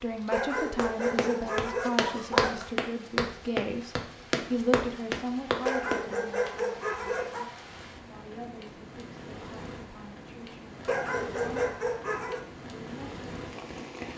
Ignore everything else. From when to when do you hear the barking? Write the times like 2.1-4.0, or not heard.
0.2-2.6, 5.6-7.5, 10.8-12.4.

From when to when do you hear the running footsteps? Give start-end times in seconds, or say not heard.
0.8-6.0.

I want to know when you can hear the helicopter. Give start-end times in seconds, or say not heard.
not heard.